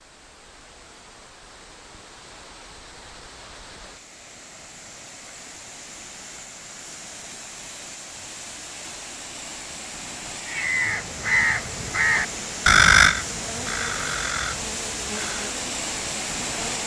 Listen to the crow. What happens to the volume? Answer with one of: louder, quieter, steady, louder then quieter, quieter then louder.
louder then quieter.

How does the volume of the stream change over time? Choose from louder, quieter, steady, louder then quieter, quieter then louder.
louder.